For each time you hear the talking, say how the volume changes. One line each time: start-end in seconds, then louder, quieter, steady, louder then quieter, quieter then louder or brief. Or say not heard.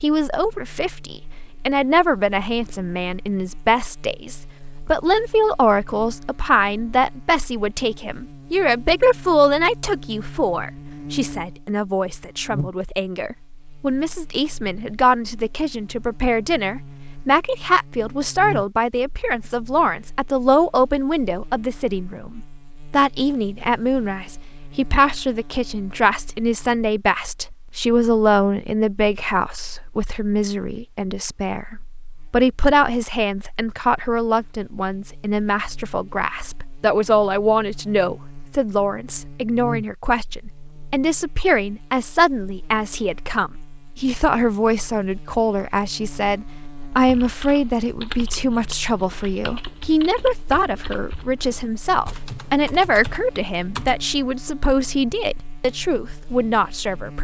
0.0-57.2 steady.